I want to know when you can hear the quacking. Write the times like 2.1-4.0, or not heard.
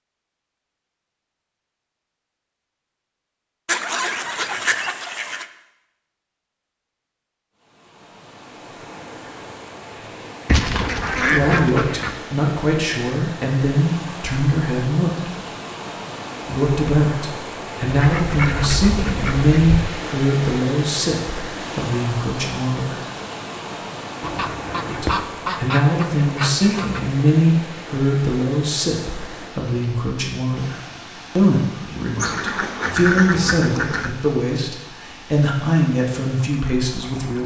3.6-5.5, 10.4-12.2, 17.9-19.9, 24.2-27.0, 32.1-34.1.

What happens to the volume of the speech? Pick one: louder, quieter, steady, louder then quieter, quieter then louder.
steady.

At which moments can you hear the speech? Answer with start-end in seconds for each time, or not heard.
11.2-15.3, 16.4-23.0, 24.9-37.4.